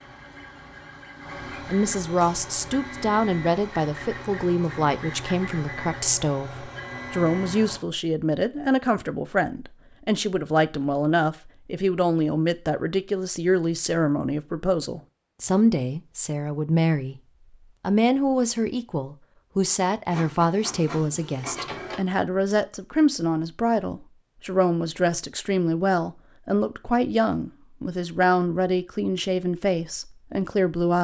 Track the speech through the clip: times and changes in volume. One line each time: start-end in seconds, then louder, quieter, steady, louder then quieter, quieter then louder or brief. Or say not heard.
1.6-17.1 steady
17.8-30.9 steady.